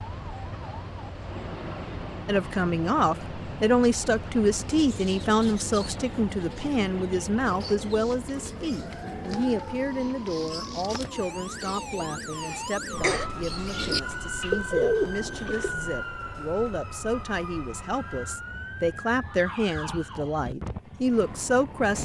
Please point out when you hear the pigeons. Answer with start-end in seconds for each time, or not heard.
4.5-15.7.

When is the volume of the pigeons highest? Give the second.
15 s.